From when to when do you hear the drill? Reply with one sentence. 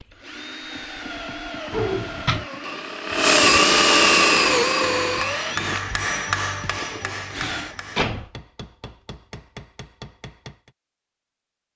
You can hear the drill from 0.0 to 7.8 s.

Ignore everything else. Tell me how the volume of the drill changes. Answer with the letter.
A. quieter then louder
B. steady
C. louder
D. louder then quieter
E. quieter
D.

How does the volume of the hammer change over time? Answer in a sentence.
The loudness of the hammer goes down.